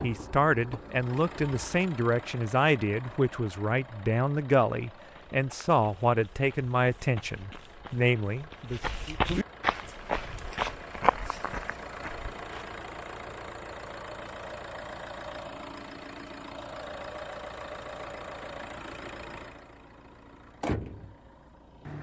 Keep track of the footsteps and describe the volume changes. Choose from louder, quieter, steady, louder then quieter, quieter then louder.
louder.